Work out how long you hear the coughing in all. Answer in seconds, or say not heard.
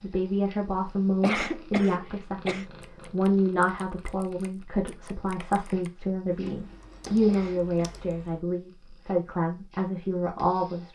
2 s.